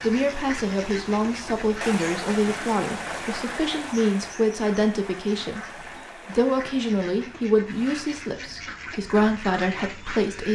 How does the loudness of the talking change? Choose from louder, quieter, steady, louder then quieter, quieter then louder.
steady.